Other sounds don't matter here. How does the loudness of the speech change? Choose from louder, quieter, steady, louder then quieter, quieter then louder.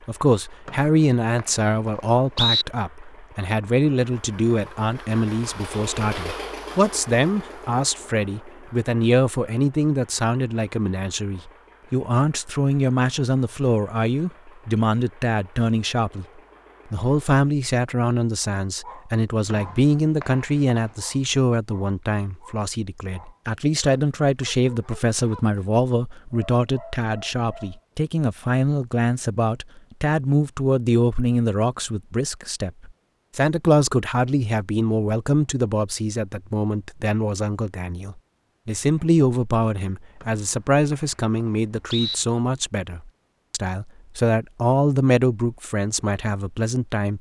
steady.